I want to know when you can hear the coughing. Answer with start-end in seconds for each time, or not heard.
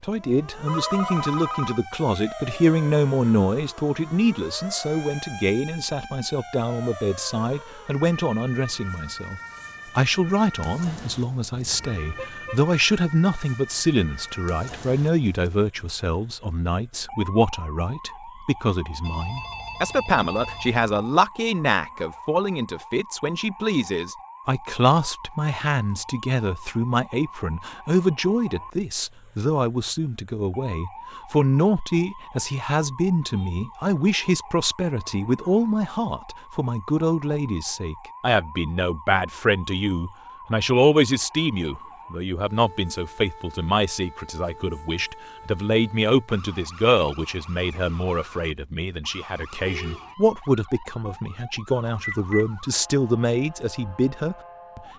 not heard.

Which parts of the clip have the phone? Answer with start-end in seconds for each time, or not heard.
0.7-1.8, 19.0-20.9, 52.0-52.5.